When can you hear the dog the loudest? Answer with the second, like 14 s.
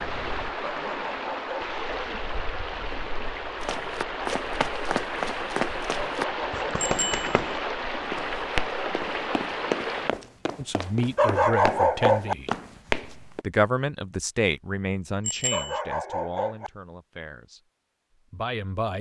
12 s.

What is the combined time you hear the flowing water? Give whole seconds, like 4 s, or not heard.
10 s.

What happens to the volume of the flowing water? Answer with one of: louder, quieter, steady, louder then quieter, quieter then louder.
steady.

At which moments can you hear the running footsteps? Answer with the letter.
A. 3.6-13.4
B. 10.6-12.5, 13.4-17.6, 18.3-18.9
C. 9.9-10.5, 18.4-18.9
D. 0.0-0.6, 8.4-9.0
A.